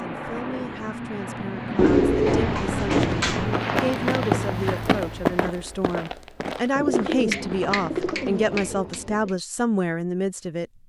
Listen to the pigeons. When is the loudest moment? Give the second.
2 s.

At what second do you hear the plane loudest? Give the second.
4 s.